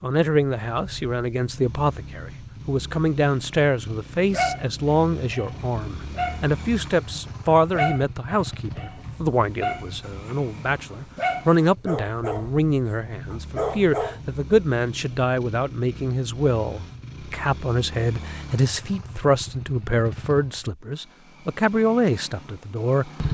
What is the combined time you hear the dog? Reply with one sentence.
The dog can be heard for 9 seconds in total.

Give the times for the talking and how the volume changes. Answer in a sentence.
The talking can be heard from 0.0 to 23.1 s, at a steady volume.